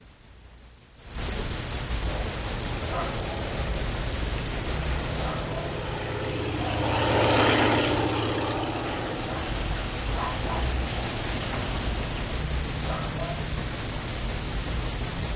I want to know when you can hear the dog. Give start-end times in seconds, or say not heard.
not heard.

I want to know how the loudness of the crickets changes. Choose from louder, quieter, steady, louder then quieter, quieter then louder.
quieter then louder.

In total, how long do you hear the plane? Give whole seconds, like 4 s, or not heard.
10 s.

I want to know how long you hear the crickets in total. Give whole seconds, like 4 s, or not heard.
15 s.